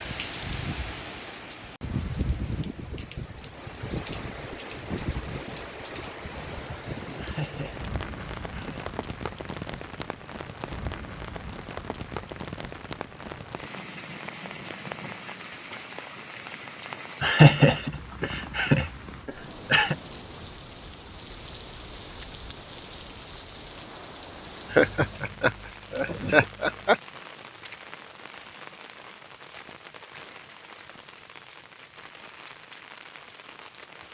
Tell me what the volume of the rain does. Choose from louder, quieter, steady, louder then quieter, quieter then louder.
quieter.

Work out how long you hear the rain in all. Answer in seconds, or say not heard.
34 s.